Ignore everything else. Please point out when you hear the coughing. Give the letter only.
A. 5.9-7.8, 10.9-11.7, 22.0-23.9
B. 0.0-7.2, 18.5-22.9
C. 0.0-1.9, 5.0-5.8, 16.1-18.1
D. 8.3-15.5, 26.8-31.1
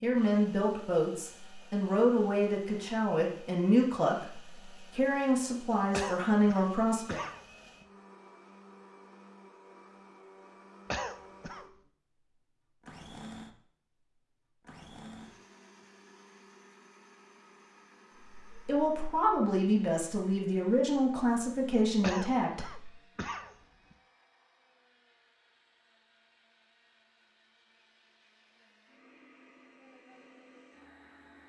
A.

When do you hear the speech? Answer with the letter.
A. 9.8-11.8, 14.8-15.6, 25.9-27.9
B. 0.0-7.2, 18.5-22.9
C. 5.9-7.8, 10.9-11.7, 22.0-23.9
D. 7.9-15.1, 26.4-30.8
B.